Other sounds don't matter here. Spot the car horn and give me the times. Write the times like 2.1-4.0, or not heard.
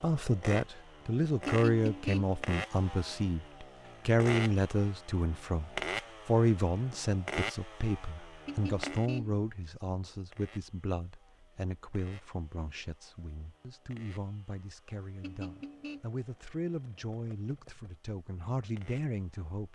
1.4-2.4, 8.4-9.4, 15.2-16.1.